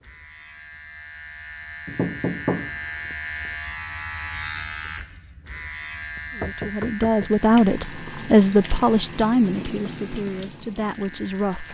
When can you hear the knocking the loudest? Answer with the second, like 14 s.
2 s.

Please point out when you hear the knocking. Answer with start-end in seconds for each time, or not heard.
1.9-3.5, 5.9-7.3.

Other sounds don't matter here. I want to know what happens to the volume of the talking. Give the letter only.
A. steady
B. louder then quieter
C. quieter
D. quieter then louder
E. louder
C.